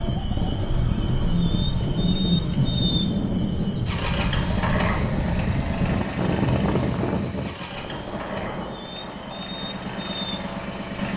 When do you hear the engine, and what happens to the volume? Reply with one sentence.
The engine can be heard from 0.0 to 11.1 s, getting quieter.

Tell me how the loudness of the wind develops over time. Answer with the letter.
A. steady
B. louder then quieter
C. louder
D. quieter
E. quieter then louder
D.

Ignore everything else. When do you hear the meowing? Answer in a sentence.
The meowing can't be heard in this clip.